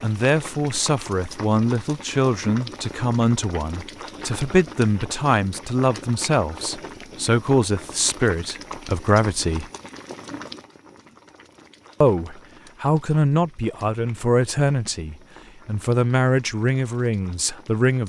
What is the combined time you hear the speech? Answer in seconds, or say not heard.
16 s.